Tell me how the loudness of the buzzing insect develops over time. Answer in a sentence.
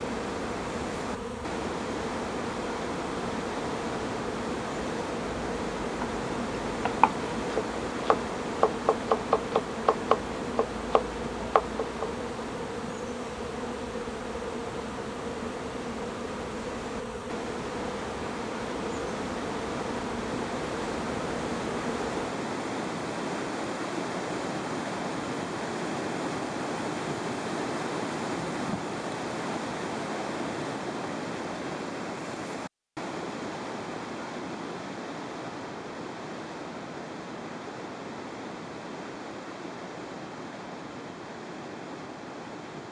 The loudness of the buzzing insect stays about the same.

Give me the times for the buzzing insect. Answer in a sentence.
You can hear the buzzing insect from 0.0 to 22.4 s.